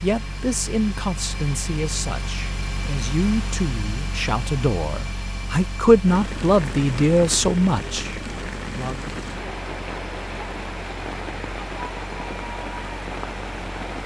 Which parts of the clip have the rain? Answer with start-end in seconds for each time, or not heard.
6.0-14.0.